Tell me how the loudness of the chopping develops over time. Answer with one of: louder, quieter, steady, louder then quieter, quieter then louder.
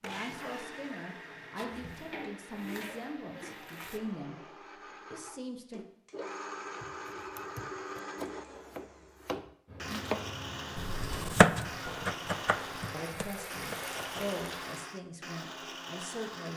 louder then quieter.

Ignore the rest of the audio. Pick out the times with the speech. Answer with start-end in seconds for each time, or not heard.
0.0-4.4, 5.1-5.8, 12.9-16.5.